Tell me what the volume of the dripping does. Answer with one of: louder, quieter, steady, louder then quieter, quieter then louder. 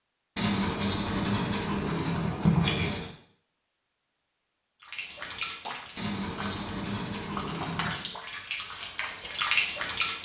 quieter then louder.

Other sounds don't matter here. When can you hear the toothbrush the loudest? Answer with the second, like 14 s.
3 s.